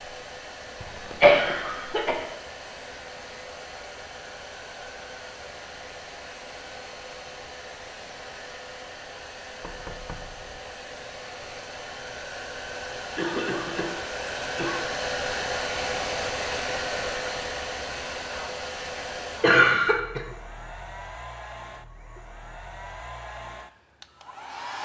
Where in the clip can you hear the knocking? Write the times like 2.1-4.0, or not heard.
9.6-10.6.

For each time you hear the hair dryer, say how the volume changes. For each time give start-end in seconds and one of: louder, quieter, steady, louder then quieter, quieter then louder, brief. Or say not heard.
0.0-24.8 louder then quieter.